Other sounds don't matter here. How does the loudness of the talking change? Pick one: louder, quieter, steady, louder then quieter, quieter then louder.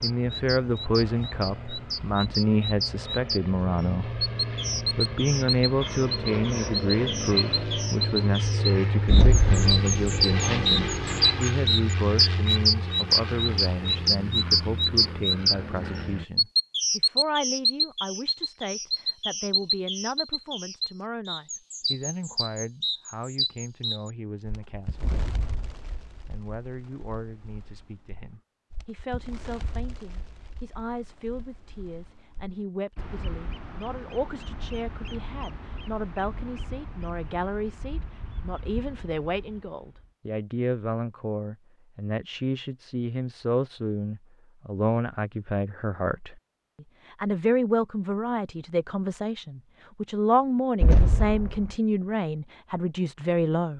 quieter then louder.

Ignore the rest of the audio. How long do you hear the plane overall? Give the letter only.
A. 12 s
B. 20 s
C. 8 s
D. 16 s
D.